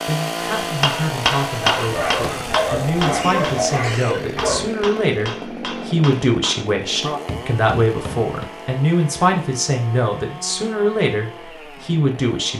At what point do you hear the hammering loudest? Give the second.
2 s.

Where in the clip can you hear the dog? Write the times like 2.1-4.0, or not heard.
1.8-4.7.